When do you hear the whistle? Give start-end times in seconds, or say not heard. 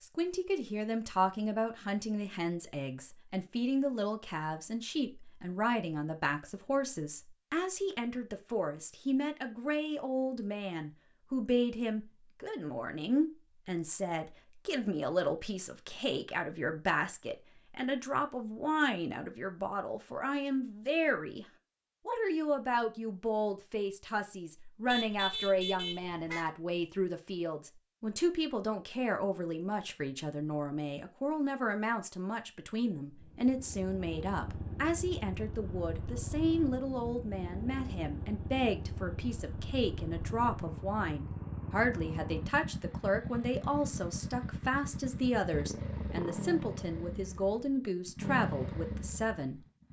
not heard.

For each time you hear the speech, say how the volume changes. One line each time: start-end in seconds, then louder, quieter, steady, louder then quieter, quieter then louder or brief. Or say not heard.
0.0-21.4 steady
22.1-49.6 steady.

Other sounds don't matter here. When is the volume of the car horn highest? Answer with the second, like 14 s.
25 s.